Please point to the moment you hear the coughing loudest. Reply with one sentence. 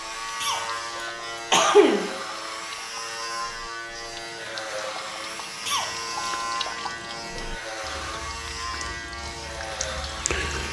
The loudest moment of the coughing is at 2 seconds.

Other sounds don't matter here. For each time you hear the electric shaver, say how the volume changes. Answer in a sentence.
The electric shaver can be heard from 0.0 to 10.6 s, at a steady volume.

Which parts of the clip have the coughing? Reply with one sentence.
You can hear the coughing from 0.4 to 2.1 s and from 5.7 to 6.3 s.